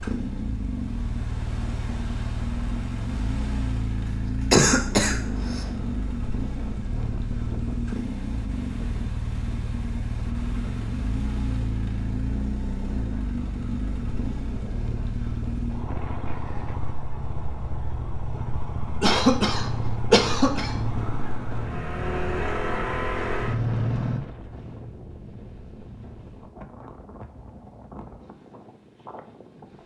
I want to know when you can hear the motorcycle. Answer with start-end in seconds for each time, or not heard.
0.0-24.2.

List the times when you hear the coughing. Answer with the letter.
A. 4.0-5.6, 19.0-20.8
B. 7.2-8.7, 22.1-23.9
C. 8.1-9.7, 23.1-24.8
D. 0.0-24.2
A.